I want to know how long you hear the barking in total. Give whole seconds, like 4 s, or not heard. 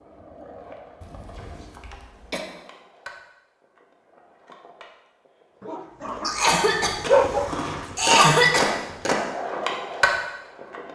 2 s.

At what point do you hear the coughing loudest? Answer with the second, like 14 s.
8 s.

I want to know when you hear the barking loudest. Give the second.
7 s.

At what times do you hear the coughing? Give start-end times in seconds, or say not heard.
1.0-2.5, 6.2-8.7.